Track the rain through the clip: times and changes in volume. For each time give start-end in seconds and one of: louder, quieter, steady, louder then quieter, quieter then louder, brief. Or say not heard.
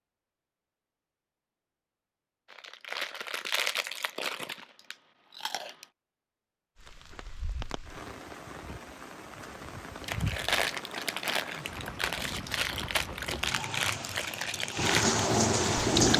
6.8-16.1 louder.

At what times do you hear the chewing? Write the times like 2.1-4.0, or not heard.
2.5-5.8, 10.0-16.1.